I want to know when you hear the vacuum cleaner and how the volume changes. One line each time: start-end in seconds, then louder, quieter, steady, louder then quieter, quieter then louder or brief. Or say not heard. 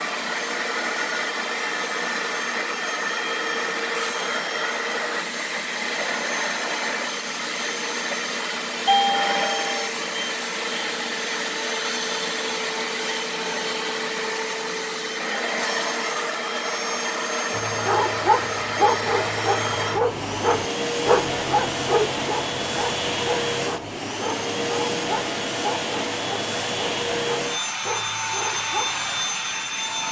0.0-30.0 steady.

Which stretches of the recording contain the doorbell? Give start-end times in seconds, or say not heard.
8.8-9.9.